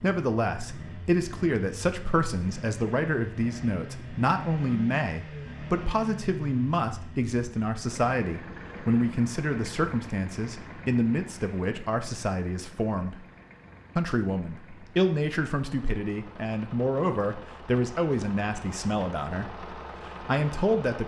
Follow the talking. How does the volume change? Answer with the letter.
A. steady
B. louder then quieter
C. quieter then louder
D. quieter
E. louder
A.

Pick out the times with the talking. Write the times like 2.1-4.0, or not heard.
0.0-13.2, 13.9-21.0.